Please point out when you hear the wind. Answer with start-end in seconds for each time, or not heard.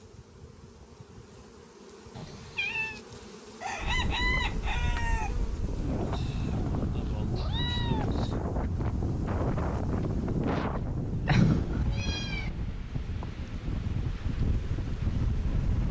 3.8-15.8.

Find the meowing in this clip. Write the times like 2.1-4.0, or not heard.
2.1-3.0, 7.3-8.2, 11.2-12.5.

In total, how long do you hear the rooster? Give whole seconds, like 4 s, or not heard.
2 s.